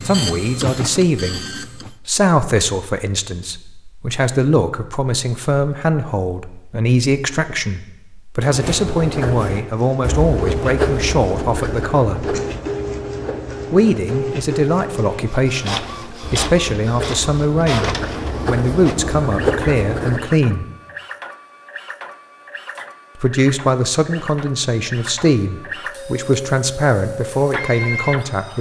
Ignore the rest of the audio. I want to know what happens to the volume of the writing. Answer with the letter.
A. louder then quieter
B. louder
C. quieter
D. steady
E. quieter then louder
E.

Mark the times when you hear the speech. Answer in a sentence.
You can hear the speech from 0.1 to 1.4 s, from 2.0 to 12.3 s, from 13.7 to 20.6 s and from 23.2 to 28.5 s.